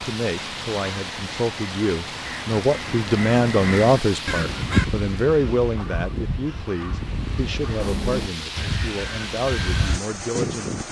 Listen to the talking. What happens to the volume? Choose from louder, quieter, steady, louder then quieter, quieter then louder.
louder then quieter.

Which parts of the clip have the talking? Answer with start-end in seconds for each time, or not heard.
0.0-10.8.